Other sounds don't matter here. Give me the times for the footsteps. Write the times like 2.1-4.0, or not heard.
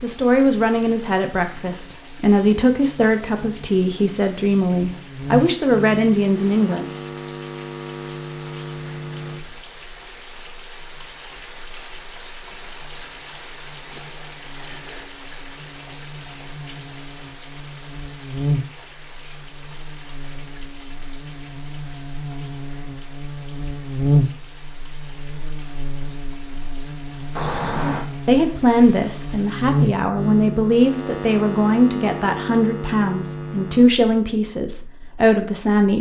not heard.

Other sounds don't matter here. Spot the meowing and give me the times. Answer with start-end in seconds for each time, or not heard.
27.4-28.1.